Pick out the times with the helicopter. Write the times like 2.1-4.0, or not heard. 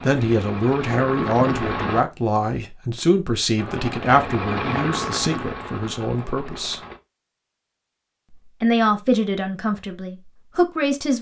0.0-2.0, 3.5-7.0.